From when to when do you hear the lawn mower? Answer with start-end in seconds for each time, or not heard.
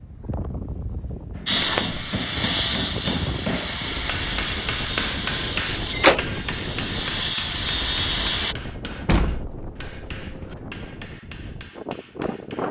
not heard.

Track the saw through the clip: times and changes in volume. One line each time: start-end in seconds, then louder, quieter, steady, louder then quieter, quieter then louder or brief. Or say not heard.
1.4-8.6 quieter then louder.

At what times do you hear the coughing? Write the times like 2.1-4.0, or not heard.
not heard.